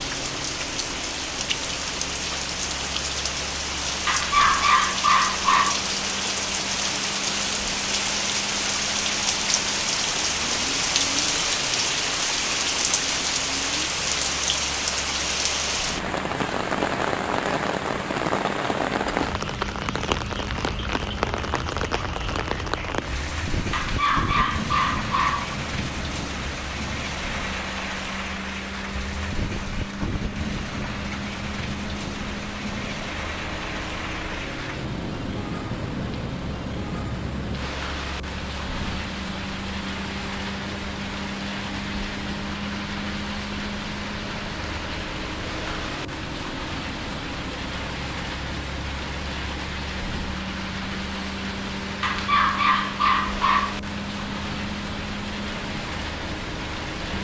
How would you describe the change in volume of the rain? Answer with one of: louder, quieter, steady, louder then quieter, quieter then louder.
quieter.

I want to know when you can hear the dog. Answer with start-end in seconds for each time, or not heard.
4.0-5.9, 23.7-25.6, 52.0-53.8.